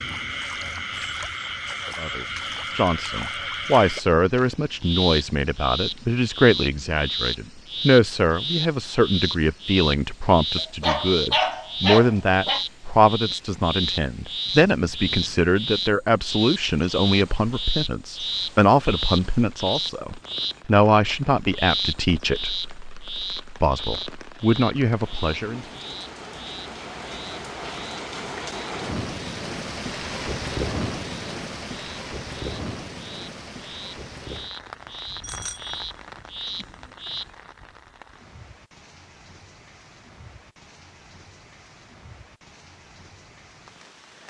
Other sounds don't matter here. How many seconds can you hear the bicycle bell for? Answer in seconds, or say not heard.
2 s.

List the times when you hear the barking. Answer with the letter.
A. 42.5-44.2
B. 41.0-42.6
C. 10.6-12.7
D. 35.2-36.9
C.